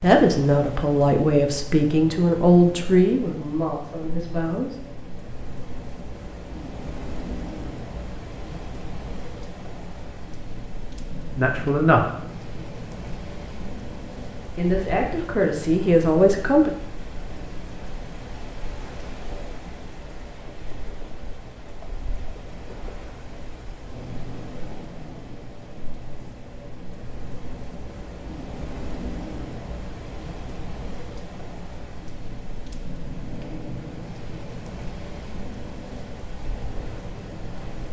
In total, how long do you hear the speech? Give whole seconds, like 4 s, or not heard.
8 s.